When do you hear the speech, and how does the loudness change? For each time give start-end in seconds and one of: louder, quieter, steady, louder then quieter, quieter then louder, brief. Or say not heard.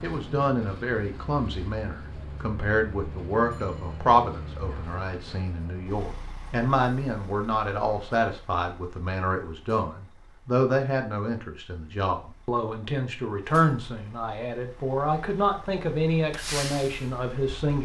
0.0-17.7 steady.